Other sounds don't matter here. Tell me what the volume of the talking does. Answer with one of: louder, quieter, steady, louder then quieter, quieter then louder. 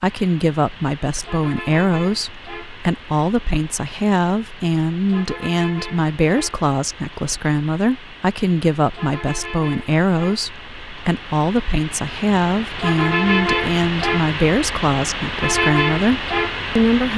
steady.